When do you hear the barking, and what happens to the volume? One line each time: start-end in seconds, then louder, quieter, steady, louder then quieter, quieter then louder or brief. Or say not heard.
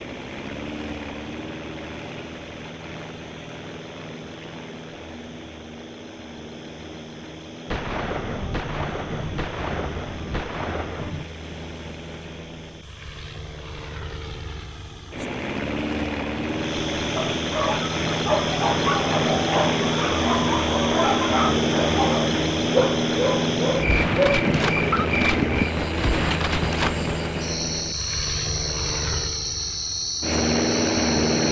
17.1-25.1 steady.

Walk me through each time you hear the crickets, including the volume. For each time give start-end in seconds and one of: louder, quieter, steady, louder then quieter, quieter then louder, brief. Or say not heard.
0.0-31.4 louder.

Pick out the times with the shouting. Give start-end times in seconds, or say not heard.
not heard.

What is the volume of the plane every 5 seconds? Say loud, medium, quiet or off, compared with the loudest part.
quiet, quiet, quiet, loud, loud, medium, loud.